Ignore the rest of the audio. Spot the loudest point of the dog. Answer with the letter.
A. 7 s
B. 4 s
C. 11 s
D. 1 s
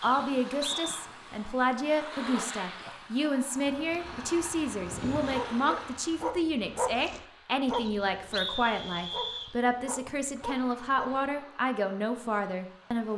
A.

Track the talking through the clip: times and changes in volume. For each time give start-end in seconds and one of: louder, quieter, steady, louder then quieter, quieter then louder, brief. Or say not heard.
0.0-13.1 steady.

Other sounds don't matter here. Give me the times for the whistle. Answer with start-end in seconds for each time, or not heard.
0.0-0.9, 7.7-9.6.